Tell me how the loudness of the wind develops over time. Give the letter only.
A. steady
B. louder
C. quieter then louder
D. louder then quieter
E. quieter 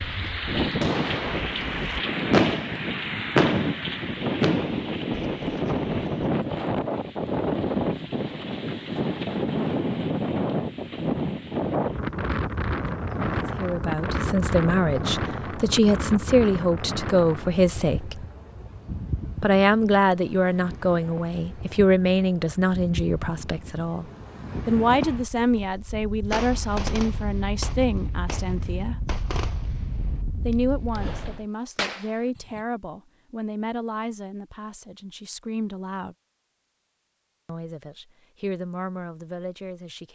E.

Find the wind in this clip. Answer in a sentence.
You can hear the wind from 0.0 to 31.4 s.